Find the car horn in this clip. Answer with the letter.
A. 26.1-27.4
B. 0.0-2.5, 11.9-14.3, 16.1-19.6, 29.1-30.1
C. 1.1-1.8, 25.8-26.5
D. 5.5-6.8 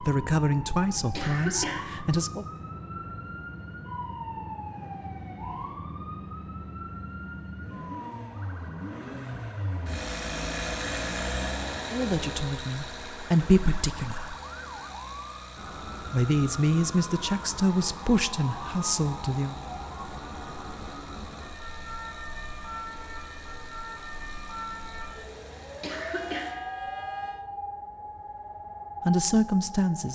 A.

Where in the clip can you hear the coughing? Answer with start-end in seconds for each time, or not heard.
1.1-1.8, 25.8-26.5.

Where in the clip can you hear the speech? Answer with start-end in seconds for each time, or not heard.
0.0-2.5, 11.9-14.3, 16.1-19.6, 29.1-30.1.